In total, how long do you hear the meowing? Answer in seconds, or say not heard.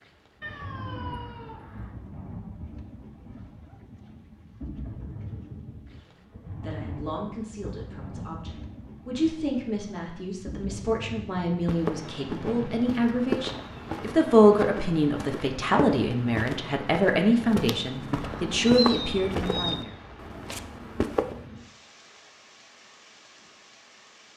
3 s.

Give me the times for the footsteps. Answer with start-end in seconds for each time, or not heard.
11.6-21.4.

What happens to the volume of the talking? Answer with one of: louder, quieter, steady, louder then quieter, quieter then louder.
louder.